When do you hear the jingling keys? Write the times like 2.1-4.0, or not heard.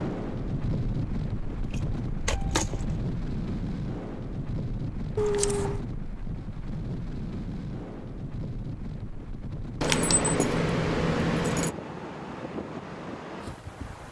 1.6-3.0, 5.2-5.8, 9.8-11.8.